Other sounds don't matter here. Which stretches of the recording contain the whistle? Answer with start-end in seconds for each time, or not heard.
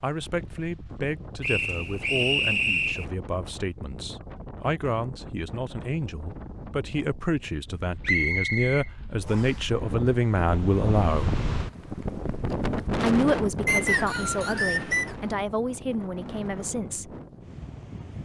1.4-3.0, 8.0-9.7, 13.7-15.2.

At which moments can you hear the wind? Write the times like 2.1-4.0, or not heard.
0.0-18.2.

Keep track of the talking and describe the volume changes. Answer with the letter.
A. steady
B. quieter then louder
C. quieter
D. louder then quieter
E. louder
D.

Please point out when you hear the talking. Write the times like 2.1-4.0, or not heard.
0.0-11.3, 13.0-17.1.